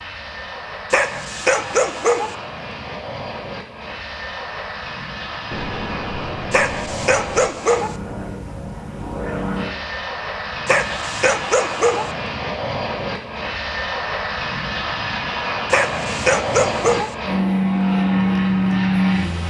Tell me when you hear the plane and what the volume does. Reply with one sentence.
You can hear the plane from 0.0 to 19.4 s, getting louder.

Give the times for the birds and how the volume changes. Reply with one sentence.
You can't hear the birds here.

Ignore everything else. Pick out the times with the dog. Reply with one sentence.
The dog can be heard from 0.9 to 2.4 s, from 6.5 to 8.0 s, from 10.7 to 12.1 s and from 15.7 to 17.1 s.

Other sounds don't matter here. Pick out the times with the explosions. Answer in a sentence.
You can hear the explosions from 5.5 to 7.5 s.